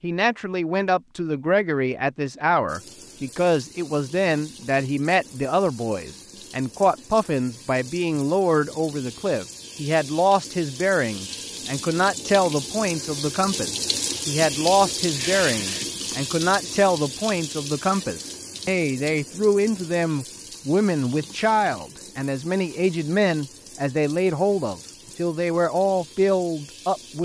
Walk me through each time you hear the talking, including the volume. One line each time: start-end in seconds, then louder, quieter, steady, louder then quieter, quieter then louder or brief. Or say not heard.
0.0-27.2 steady.